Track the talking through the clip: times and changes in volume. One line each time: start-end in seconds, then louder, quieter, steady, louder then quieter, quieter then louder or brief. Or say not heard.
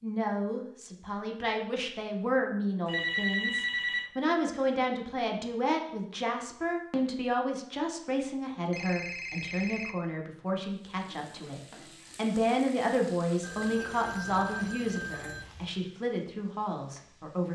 0.0-17.4 steady.